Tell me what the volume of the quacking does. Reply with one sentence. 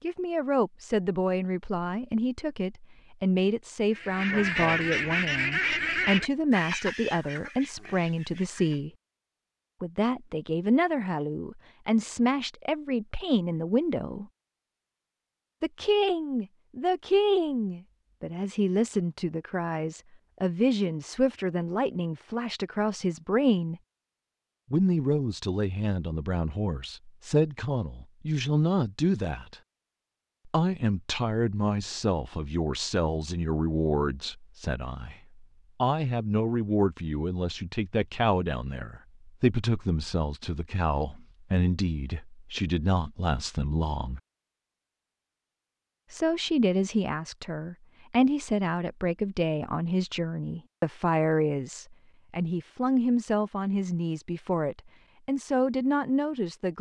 The volume of the quacking goes down.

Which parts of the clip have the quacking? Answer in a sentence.
The quacking can be heard from 4.0 to 8.8 s.